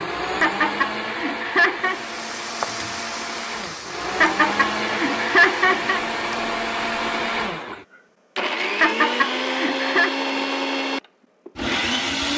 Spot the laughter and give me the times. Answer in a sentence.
The laughter can be heard from 0.4 to 2.0 s, from 4.2 to 6.0 s and from 8.8 to 10.2 s.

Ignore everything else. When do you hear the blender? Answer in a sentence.
You can hear the blender from 0.0 to 12.3 s.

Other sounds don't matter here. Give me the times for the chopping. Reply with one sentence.
You can't hear the chopping here.